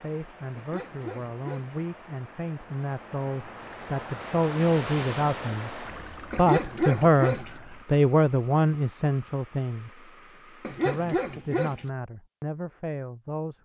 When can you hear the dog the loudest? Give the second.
7 s.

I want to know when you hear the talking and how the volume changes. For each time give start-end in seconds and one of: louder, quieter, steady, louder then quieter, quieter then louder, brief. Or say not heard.
0.0-10.1 louder
10.8-13.6 brief.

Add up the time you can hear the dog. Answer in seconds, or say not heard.
4 s.